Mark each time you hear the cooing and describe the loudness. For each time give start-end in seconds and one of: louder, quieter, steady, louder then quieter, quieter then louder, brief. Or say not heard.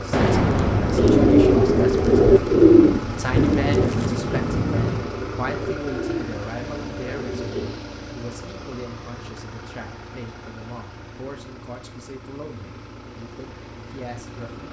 0.9-7.8 quieter.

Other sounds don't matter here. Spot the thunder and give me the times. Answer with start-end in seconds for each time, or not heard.
0.1-5.1.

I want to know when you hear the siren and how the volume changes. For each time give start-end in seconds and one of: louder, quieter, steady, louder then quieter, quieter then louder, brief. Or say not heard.
not heard.